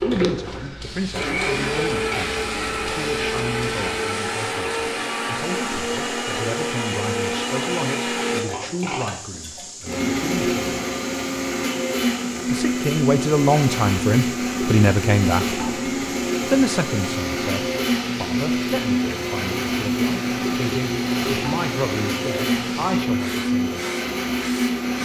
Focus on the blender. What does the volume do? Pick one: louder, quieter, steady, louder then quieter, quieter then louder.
steady.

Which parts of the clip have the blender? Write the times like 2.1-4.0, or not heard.
0.0-25.0.